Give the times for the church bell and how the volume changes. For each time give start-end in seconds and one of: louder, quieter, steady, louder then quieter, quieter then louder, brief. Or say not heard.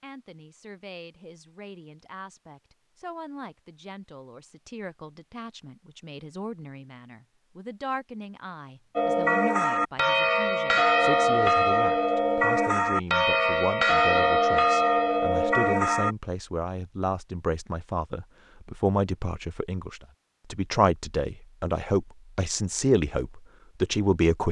8.9-16.1 steady.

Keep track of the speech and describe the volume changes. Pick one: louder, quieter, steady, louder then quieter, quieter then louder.
louder.